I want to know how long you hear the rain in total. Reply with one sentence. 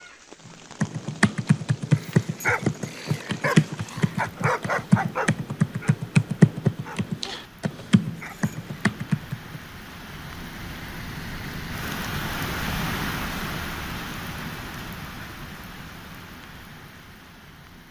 The rain can be heard for 18 seconds in total.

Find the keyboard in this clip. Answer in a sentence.
The keyboard can be heard from 0.8 to 9.6 s.